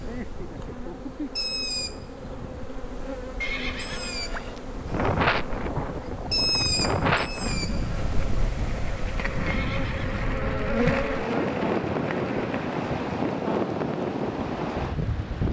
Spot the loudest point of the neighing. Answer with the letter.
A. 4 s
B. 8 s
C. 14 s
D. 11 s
A.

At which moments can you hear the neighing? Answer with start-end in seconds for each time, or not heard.
3.4-4.7, 9.4-10.2.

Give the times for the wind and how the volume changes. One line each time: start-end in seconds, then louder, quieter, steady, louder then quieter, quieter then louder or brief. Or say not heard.
0.0-15.4 louder.